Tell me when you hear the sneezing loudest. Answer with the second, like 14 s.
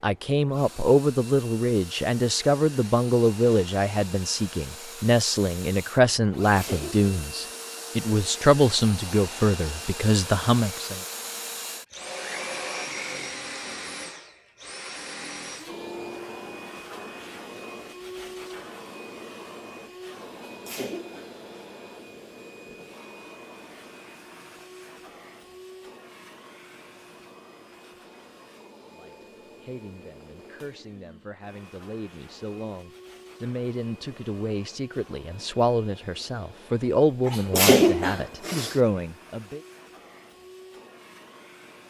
38 s.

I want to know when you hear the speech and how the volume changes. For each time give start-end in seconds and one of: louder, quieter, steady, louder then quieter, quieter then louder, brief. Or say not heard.
0.0-11.0 steady
28.9-39.6 louder.